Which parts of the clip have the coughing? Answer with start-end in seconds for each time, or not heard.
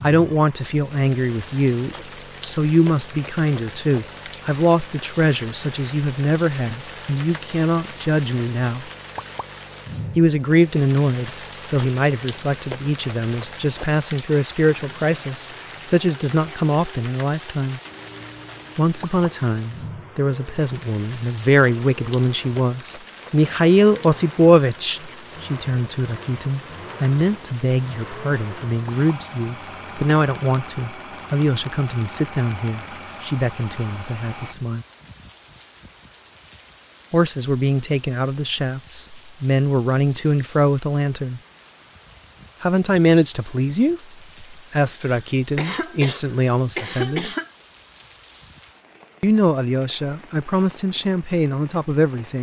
45.0-47.5.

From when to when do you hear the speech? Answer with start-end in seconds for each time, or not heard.
0.0-8.8, 10.2-17.8, 18.8-34.9, 37.1-41.4, 42.6-47.3, 49.2-52.3.